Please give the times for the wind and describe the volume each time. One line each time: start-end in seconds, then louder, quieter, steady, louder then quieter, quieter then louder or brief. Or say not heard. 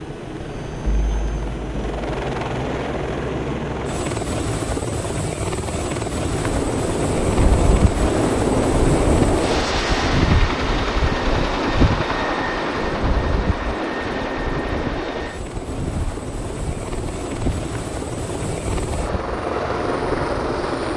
6.3-20.9 quieter.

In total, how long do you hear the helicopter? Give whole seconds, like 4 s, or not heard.
21 s.